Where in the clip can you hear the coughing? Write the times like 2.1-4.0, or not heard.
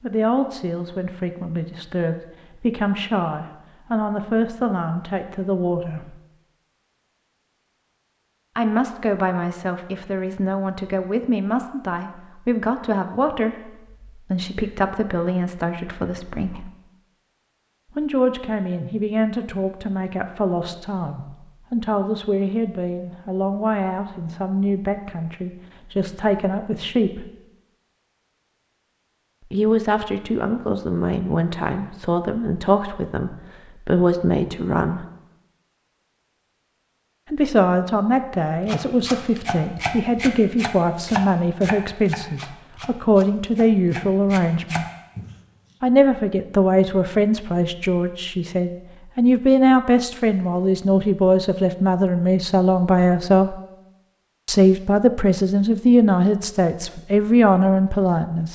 not heard.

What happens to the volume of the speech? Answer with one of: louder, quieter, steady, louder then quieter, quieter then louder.
louder.